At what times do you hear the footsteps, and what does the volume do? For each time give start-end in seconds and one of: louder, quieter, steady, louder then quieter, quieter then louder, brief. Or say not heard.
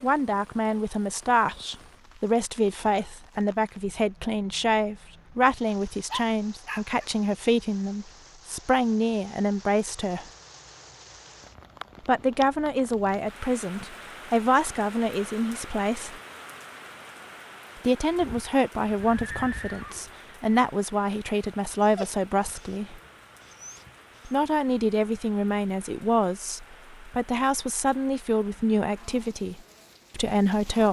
not heard.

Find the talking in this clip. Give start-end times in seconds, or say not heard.
0.0-10.2, 12.1-16.1, 17.8-23.0, 24.2-30.8.